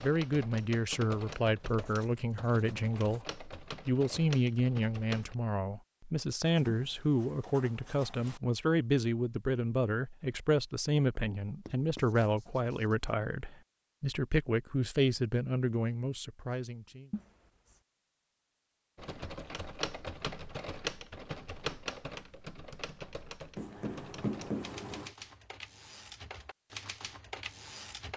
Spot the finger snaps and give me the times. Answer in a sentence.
The finger snaps can't be heard in this clip.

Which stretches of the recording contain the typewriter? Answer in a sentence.
You can hear the typewriter from 0.0 to 5.3 s and from 18.9 to 28.1 s.